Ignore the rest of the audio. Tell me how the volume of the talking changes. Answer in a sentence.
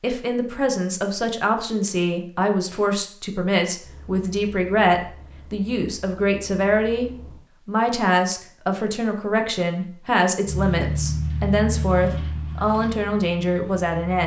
The loudness of the talking stays about the same.